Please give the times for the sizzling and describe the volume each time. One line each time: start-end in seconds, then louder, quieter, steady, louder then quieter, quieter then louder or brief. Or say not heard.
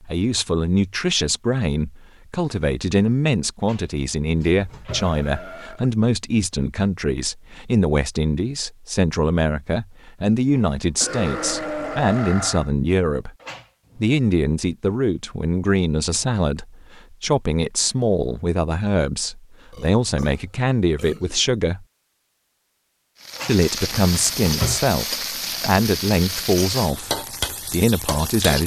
23.2-28.6 steady.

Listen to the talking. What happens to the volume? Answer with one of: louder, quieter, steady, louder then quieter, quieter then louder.
steady.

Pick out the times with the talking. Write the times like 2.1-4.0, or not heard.
0.0-13.3, 13.9-21.9, 23.4-28.6.